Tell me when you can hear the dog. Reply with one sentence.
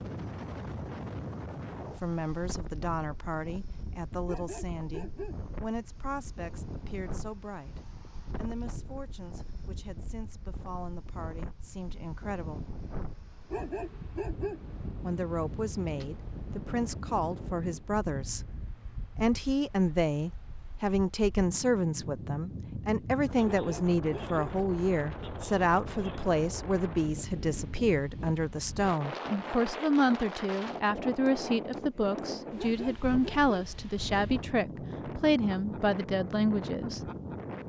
You can hear the dog from 4.2 to 5.5 s, from 13.5 to 14.7 s, from 23.4 to 24.4 s and from 32.5 to 33.8 s.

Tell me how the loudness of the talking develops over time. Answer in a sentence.
The volume of the talking goes up.